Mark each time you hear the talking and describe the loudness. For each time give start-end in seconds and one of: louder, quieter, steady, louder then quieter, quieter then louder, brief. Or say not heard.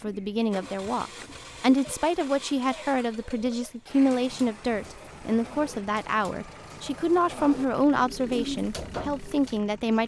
0.0-10.0 steady.